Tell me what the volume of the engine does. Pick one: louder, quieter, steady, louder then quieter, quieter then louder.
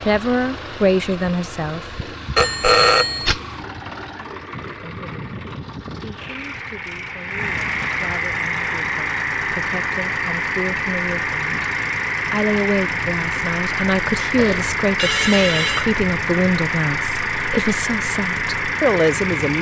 louder.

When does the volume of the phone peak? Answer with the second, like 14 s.
3 s.